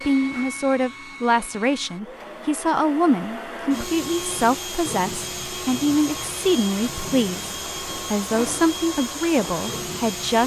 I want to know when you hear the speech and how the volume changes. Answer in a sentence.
The speech can be heard from 0.1 to 10.4 s, at a steady volume.